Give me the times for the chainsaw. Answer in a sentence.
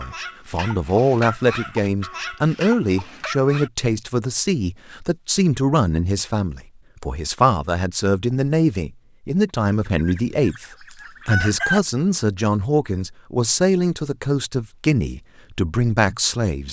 The chainsaw can't be heard in this clip.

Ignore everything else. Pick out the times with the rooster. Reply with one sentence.
The rooster can be heard from 9.8 to 11.8 s.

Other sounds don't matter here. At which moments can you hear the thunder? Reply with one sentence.
The thunder can't be heard in this clip.